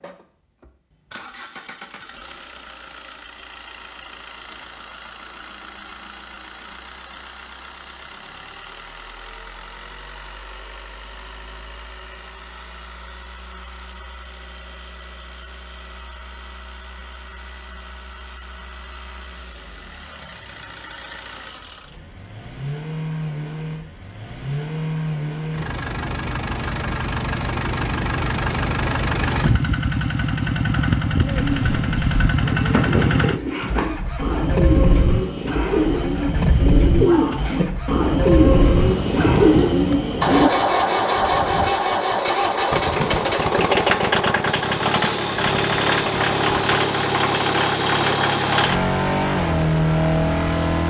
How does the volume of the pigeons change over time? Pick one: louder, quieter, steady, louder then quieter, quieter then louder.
louder.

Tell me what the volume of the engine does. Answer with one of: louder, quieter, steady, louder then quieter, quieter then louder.
louder.